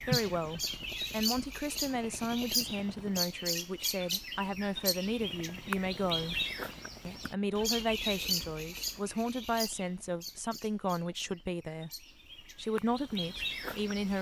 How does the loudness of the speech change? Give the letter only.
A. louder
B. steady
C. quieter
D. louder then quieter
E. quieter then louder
B.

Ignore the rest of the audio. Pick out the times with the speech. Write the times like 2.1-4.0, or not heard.
0.0-6.5, 7.0-14.1.